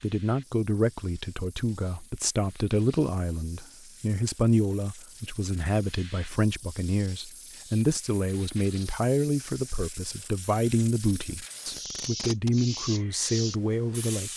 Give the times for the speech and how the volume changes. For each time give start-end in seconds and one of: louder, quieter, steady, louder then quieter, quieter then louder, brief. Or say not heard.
0.0-14.3 steady.